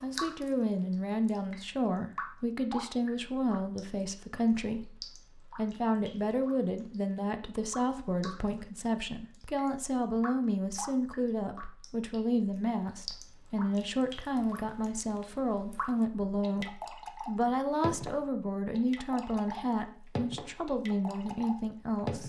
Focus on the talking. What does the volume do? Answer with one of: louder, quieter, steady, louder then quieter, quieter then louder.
steady.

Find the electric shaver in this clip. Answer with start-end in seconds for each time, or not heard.
not heard.